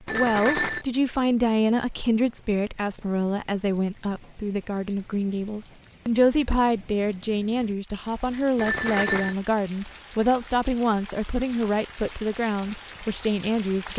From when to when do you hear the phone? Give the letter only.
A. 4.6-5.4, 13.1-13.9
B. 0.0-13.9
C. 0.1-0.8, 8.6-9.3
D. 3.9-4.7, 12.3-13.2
C.